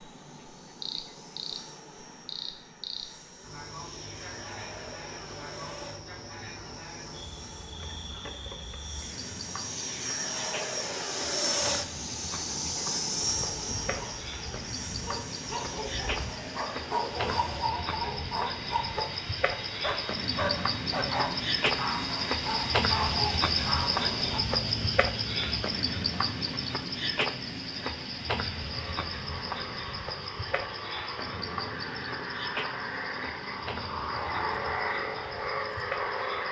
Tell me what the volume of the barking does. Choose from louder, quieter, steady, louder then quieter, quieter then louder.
louder.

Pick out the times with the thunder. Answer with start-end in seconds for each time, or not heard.
not heard.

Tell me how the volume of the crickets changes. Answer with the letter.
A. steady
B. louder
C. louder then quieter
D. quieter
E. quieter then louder
C.